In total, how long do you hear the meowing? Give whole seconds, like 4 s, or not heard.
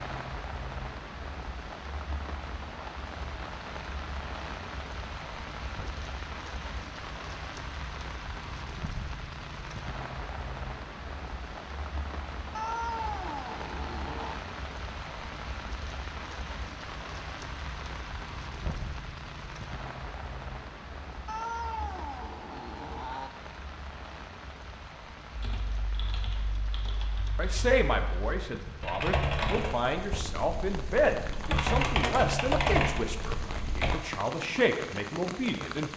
4 s.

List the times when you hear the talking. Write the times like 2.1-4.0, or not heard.
27.4-35.9.